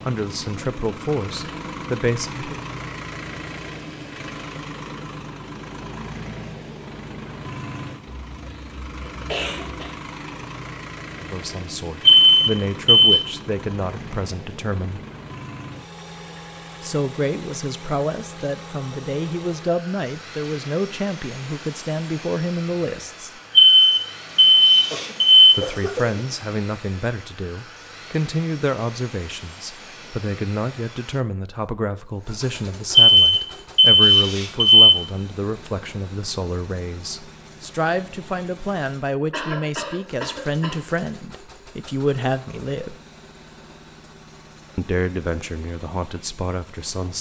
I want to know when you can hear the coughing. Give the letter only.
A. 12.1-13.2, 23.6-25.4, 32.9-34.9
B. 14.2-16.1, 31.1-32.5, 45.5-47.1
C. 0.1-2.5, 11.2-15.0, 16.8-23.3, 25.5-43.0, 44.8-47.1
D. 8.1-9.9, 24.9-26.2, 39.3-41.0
D.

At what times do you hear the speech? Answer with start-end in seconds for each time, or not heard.
0.1-2.5, 11.2-15.0, 16.8-23.3, 25.5-43.0, 44.8-47.1.